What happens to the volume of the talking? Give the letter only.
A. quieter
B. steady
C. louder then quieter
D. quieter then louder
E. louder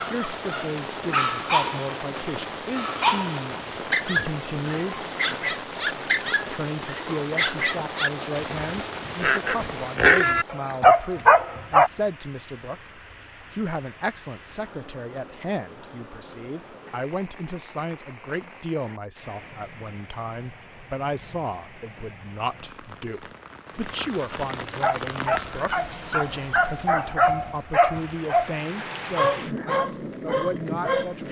B.